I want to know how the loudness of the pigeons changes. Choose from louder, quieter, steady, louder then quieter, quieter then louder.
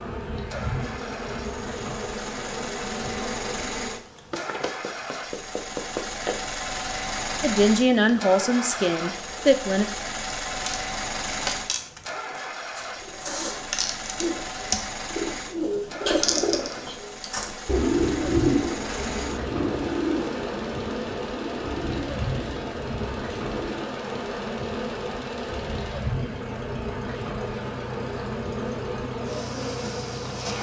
louder then quieter.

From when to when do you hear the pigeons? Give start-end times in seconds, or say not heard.
12.8-23.9.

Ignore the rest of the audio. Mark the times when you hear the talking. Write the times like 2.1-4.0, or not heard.
7.4-9.8.